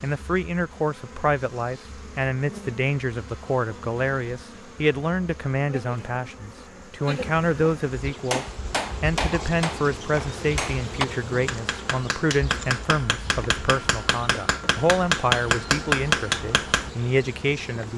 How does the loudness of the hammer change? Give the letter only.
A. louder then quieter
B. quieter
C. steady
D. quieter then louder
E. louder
E.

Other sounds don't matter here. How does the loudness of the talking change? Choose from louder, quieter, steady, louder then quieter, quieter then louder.
steady.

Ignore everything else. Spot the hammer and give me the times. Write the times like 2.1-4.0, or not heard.
8.3-16.9.